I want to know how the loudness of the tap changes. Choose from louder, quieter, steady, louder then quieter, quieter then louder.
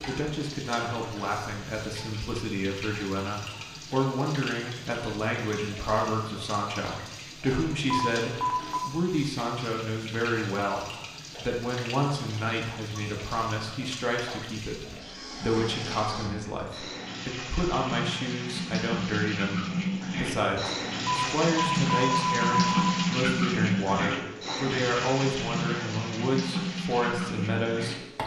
louder.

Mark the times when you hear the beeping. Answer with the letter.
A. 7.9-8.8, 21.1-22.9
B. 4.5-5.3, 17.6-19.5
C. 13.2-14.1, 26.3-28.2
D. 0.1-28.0
A.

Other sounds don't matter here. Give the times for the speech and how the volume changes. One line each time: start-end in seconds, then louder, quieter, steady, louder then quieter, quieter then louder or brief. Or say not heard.
0.1-28.0 steady.